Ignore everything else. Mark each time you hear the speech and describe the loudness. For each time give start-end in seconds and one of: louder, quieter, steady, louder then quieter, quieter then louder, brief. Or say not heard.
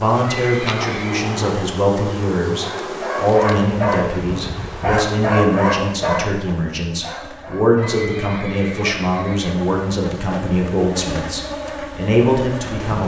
0.0-13.0 steady.